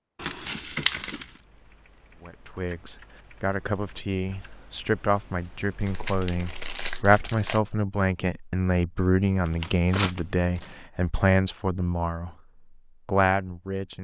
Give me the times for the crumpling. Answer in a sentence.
The crumpling can be heard from 0.1 to 1.4 s, from 5.8 to 7.6 s and from 9.4 to 10.8 s.